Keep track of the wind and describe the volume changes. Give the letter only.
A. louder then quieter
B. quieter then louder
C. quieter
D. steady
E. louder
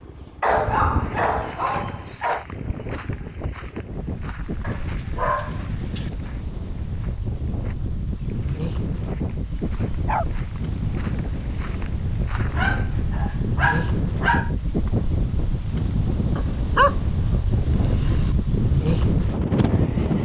E.